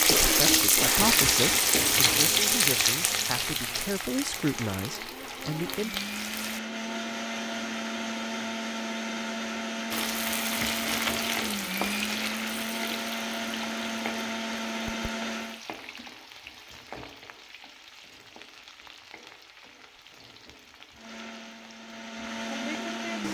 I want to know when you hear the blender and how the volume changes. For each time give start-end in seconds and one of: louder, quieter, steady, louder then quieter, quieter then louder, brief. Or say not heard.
0.0-15.7 quieter then louder
20.9-23.2 brief.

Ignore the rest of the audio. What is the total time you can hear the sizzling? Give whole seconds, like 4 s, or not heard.
20 s.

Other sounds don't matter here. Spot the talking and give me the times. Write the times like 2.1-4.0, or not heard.
0.0-6.0.